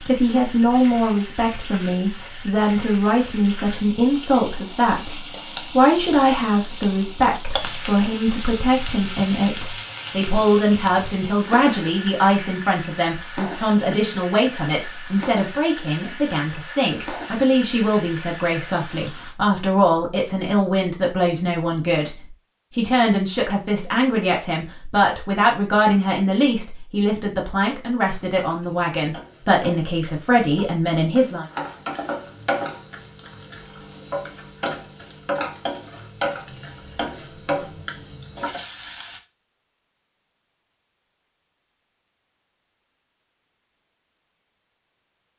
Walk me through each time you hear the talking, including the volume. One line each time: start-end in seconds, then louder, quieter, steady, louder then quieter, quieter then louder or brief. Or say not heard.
0.0-31.4 steady.